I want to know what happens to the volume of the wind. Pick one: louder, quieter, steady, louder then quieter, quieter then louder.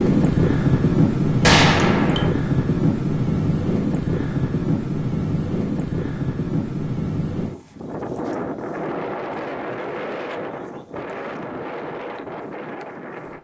quieter.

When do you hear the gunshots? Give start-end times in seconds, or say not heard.
1.4-2.3.